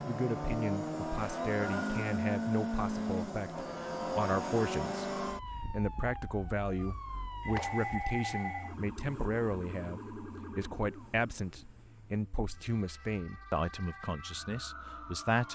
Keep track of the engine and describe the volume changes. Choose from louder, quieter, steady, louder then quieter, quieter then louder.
quieter.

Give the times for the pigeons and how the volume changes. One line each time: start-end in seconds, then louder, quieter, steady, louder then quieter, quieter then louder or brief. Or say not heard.
not heard.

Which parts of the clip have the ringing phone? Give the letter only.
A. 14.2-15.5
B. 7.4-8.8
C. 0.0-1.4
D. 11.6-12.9
B.